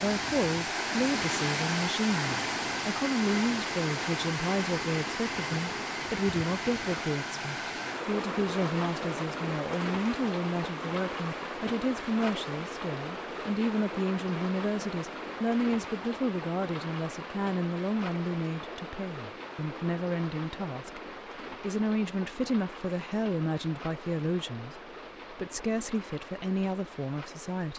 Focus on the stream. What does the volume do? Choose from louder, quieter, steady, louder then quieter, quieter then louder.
quieter.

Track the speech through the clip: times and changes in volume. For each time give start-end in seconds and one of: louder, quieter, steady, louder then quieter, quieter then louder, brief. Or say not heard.
0.0-27.7 steady.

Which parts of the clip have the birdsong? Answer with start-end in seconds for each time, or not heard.
not heard.